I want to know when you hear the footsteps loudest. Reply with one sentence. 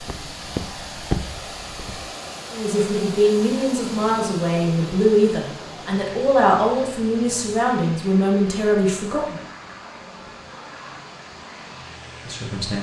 The volume of the footsteps peaks at 1 second.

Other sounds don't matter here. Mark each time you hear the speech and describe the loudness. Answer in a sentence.
The speech can be heard from 2.5 to 9.4 s, at a steady volume; and briefly from 12.2 to 12.7 s.